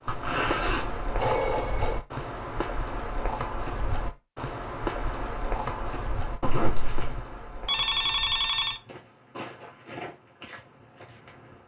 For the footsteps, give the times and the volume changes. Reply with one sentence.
You can hear the footsteps from 0.0 to 11.6 s, getting quieter.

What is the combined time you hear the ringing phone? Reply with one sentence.
You can hear the ringing phone for 2 seconds altogether.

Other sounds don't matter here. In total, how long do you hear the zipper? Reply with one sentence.
You can hear the zipper for 2 seconds altogether.